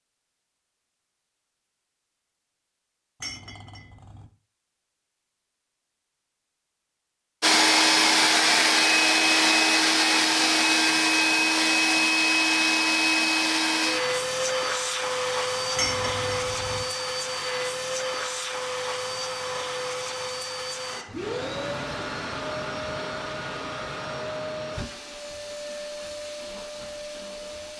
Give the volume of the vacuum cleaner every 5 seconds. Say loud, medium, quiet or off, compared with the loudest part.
off, loud, loud, medium, quiet, quiet.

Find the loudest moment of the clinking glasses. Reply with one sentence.
The loudest moment of the clinking glasses is at 16 seconds.